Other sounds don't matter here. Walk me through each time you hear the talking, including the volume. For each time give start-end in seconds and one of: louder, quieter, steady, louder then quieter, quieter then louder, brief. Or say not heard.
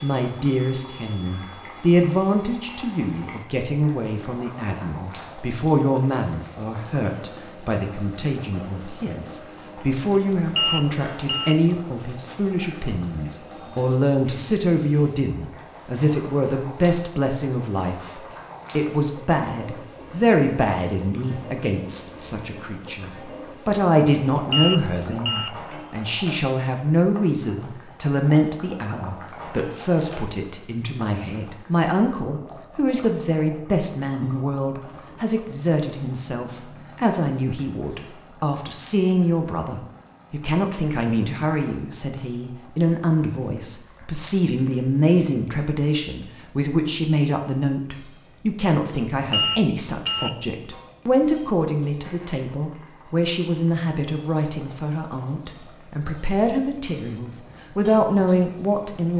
0.0-59.1 steady.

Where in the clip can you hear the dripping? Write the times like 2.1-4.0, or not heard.
not heard.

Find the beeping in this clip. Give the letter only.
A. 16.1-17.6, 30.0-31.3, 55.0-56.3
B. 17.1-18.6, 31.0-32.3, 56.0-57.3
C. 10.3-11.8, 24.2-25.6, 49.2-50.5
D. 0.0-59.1
C.